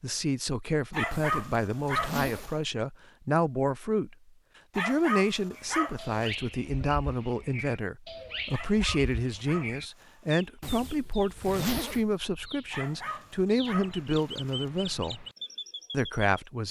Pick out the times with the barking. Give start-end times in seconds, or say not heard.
0.9-2.5, 4.8-6.2, 8.5-10.3, 12.7-14.7.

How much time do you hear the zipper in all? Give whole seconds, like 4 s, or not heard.
3 s.